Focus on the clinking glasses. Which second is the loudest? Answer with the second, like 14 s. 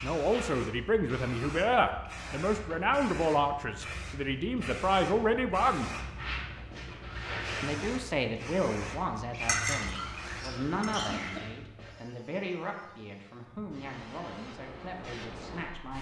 10 s.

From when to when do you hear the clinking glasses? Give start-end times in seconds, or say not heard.
9.4-11.4.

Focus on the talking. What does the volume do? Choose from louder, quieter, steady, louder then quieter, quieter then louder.
quieter.